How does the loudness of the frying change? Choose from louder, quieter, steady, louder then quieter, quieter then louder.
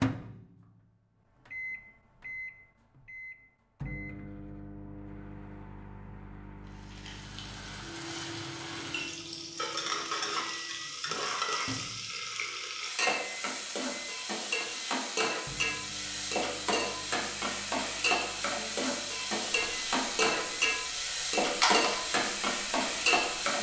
louder.